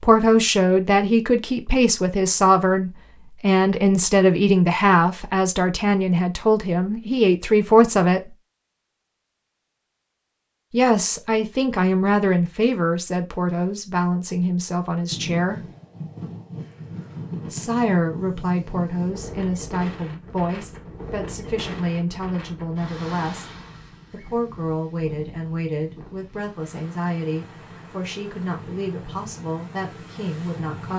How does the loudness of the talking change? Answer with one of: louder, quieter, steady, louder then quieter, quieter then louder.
quieter.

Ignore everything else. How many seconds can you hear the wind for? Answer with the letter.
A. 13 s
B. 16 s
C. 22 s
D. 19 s
B.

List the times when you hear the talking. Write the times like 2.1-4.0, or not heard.
0.0-8.3, 10.7-15.6, 17.5-30.9.